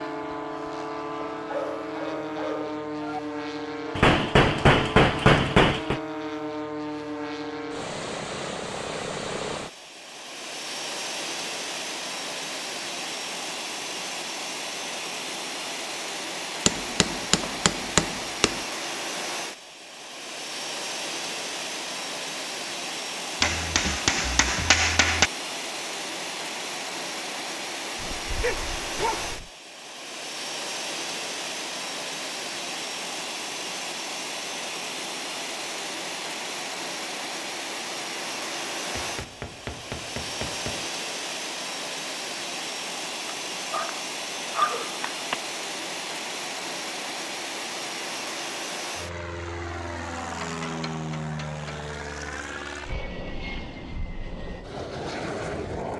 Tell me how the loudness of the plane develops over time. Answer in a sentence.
The volume of the plane stays about the same.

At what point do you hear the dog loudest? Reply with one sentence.
The loudest moment of the dog is at 45 seconds.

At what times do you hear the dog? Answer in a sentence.
The dog can be heard from 1.2 to 3.2 s, from 28.0 to 29.5 s and from 43.2 to 45.4 s.